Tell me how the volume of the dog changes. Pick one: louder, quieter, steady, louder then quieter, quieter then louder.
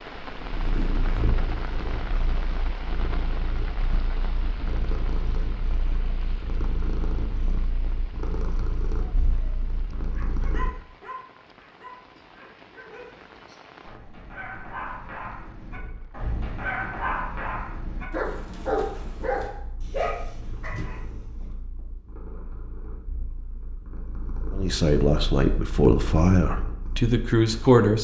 quieter then louder.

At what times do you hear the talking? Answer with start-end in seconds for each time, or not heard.
24.5-27.9.